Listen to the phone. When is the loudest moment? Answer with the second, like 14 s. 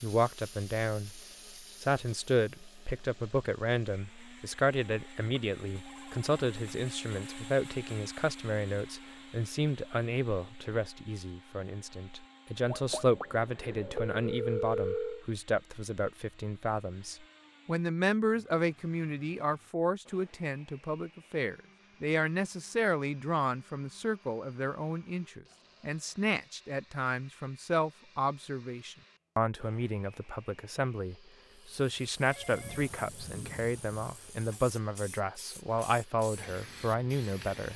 15 s.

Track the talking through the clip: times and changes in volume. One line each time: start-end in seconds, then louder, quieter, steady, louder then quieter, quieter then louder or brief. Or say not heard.
0.0-1.2 brief
1.8-37.7 steady.